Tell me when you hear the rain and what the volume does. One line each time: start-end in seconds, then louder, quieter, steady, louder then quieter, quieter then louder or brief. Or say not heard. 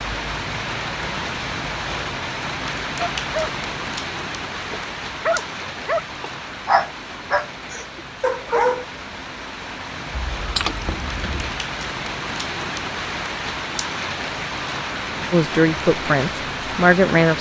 0.0-17.3 quieter then louder.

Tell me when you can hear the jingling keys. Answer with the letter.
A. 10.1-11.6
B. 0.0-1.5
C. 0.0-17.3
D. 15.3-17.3
A.